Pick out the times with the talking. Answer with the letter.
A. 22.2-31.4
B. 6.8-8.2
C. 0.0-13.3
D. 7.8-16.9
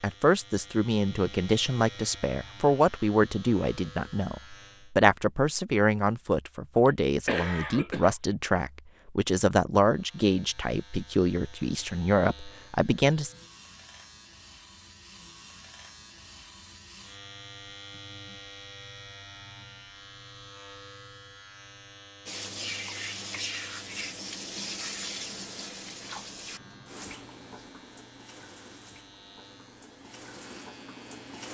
C.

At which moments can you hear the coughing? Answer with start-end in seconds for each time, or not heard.
6.8-8.2.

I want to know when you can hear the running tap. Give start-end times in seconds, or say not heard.
22.2-31.4.